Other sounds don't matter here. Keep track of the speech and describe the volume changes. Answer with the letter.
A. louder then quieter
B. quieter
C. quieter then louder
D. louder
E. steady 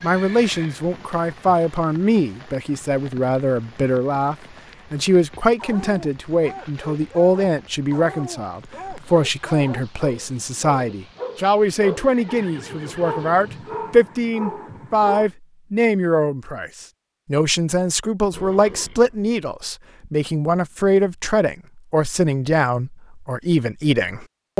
E.